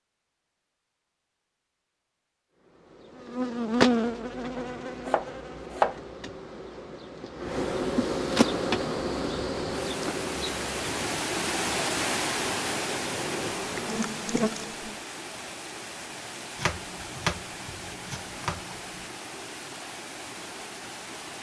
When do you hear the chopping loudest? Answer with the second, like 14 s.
6 s.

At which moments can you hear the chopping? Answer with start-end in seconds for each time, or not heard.
4.5-6.0, 16.6-19.1.